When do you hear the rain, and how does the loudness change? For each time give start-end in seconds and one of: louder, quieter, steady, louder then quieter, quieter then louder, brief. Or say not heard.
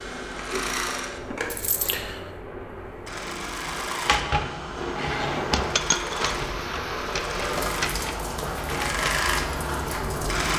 0.0-10.5 louder.